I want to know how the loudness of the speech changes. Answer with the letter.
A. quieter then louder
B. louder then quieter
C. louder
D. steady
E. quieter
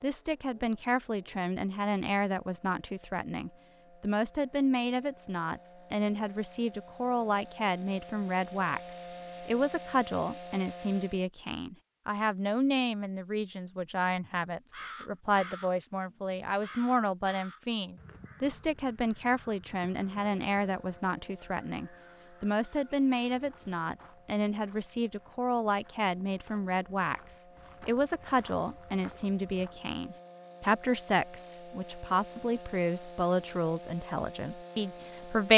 D.